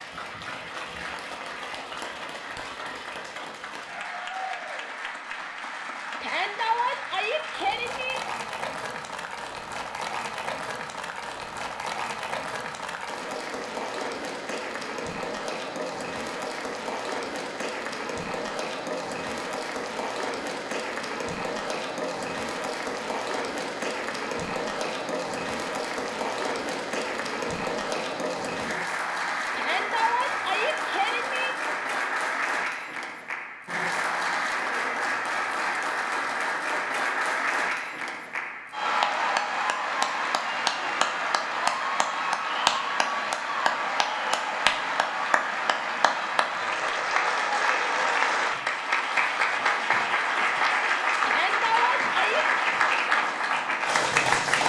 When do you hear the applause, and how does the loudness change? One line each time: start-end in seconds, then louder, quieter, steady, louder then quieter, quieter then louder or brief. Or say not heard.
0.0-54.6 louder.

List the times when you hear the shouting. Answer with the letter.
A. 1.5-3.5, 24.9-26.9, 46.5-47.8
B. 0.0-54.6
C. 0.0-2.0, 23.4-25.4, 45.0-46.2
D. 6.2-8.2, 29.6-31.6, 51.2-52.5
D.